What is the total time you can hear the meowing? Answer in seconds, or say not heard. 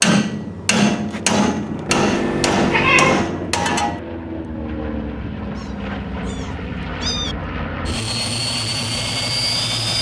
3 s.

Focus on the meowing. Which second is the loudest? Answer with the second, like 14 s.
3 s.